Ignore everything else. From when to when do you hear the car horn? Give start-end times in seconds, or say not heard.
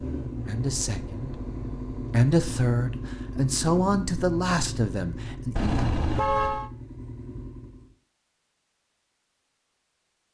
5.5-6.7.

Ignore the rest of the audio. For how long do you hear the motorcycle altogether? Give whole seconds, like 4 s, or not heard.
8 s.